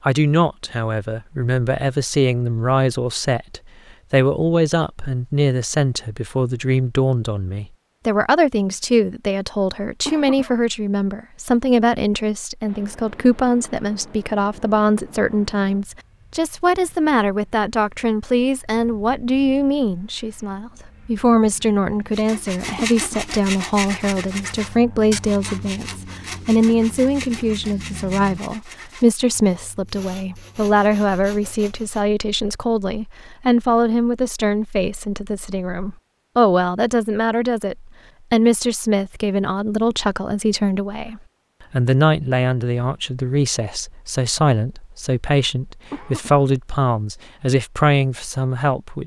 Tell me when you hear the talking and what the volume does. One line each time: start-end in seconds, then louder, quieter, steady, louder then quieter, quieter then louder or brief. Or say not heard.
0.0-49.0 steady.